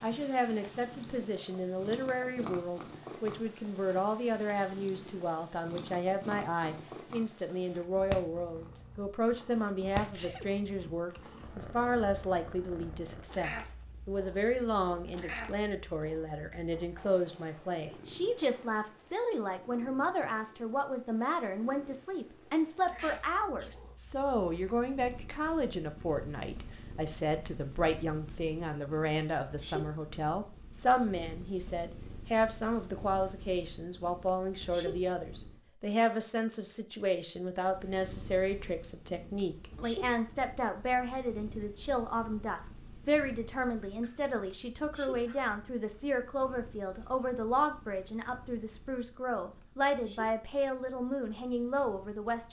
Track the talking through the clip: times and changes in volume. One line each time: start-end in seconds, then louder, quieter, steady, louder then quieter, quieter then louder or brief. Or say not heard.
0.0-52.4 steady.